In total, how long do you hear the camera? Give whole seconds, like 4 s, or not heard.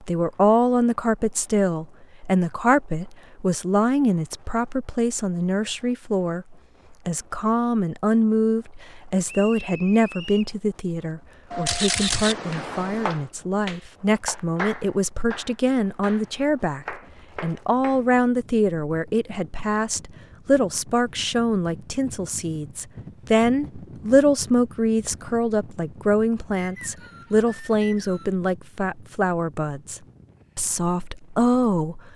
2 s.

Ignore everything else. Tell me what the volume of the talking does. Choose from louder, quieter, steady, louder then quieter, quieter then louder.
steady.